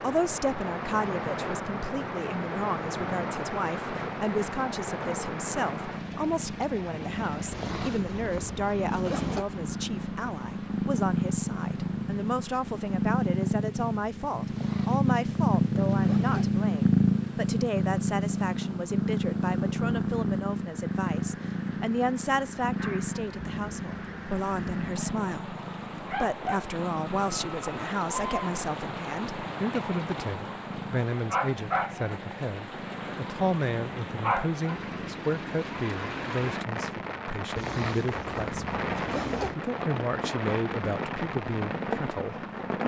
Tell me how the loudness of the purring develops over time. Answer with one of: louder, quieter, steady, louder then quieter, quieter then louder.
louder then quieter.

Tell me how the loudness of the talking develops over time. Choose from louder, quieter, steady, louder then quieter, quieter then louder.
steady.